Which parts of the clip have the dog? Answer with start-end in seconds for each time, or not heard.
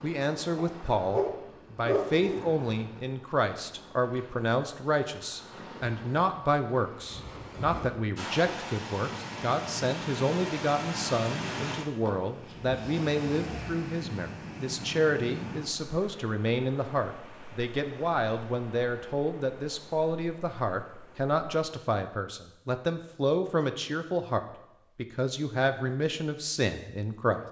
0.6-2.5.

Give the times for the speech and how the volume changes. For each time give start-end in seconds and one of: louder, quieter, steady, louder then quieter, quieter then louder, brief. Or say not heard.
0.0-27.4 steady.